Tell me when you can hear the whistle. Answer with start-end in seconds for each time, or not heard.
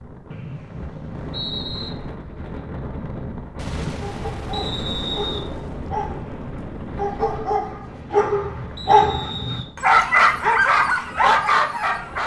0.3-1.9, 4.5-5.5, 8.8-9.7.